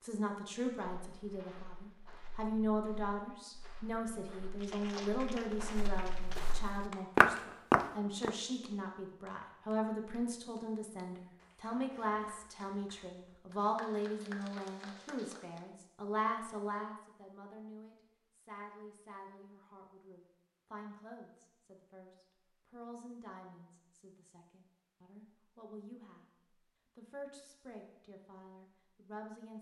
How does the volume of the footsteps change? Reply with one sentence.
The volume of the footsteps goes up.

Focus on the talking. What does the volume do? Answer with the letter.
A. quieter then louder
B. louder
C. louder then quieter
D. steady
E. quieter
E.